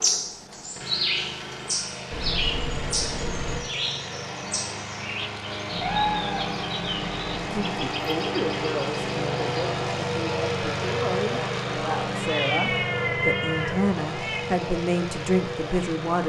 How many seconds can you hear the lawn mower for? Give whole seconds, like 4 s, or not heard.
16 s.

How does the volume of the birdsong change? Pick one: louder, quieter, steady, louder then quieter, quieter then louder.
quieter.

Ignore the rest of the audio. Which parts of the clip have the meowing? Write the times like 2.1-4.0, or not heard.
2.1-3.6, 5.7-7.5, 12.1-14.4.